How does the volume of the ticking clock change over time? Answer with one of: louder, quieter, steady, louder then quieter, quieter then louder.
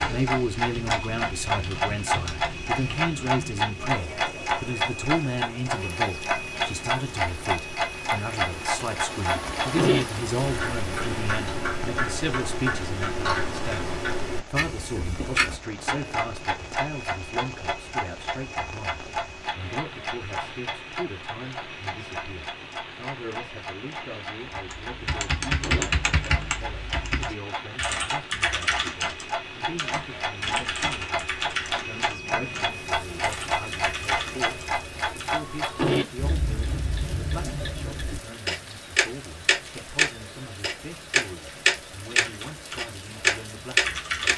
quieter then louder.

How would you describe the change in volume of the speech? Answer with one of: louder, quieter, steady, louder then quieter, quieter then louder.
quieter.